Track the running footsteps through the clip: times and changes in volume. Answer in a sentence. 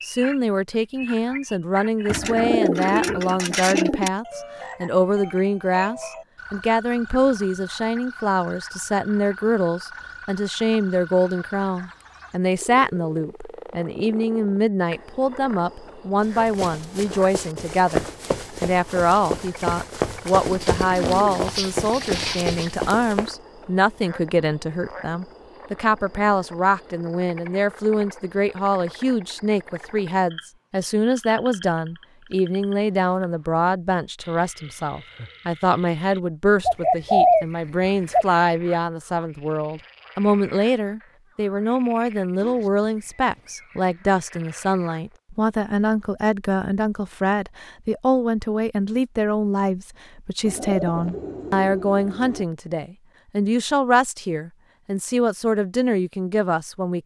The running footsteps can be heard from 16.2 to 23.3 s, getting louder.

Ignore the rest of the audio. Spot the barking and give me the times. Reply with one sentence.
You can't hear the barking here.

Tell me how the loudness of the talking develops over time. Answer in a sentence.
The loudness of the talking stays about the same.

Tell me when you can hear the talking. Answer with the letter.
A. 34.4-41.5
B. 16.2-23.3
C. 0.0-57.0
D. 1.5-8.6
C.